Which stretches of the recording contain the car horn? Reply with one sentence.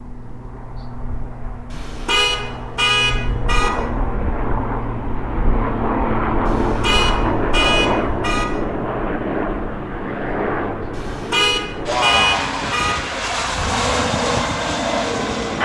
You can hear the car horn from 1.7 to 3.7 s, from 6.5 to 8.4 s and from 10.9 to 12.9 s.